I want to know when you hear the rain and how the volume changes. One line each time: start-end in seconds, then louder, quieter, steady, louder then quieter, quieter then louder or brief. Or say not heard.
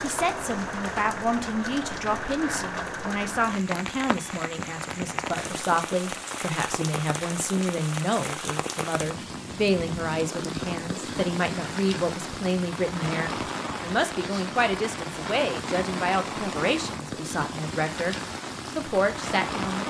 0.0-19.8 steady.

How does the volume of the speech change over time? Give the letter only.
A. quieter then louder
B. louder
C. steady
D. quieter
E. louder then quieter
C.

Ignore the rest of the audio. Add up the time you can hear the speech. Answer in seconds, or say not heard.
20 s.